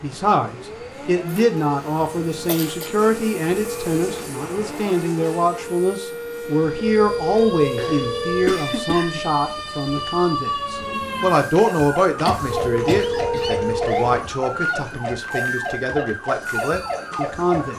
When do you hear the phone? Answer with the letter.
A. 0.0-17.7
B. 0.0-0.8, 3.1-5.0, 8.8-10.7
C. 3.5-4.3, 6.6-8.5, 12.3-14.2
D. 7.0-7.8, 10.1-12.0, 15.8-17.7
C.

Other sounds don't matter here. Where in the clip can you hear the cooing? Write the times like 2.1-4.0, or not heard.
not heard.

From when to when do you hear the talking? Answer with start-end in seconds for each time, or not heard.
0.0-17.7.